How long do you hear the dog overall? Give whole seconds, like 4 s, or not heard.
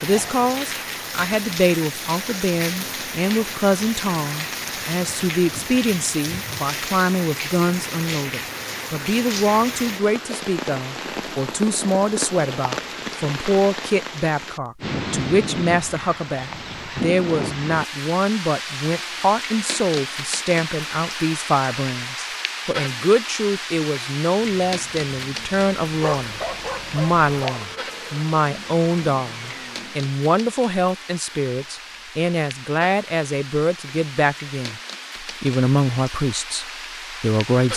2 s.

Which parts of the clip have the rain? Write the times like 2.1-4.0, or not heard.
0.0-37.7.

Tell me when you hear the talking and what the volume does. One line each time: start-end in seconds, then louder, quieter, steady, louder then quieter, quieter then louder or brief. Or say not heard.
0.0-37.7 steady.